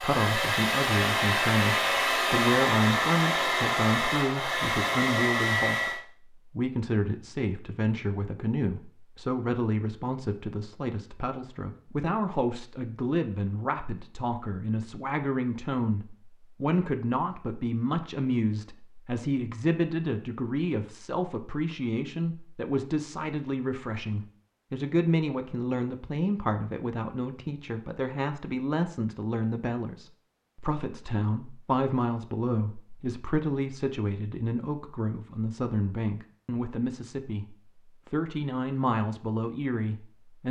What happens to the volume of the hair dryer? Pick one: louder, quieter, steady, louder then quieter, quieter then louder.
steady.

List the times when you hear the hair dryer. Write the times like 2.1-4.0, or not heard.
0.0-6.0.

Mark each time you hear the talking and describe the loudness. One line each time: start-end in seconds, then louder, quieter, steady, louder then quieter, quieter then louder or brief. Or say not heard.
0.0-40.4 steady.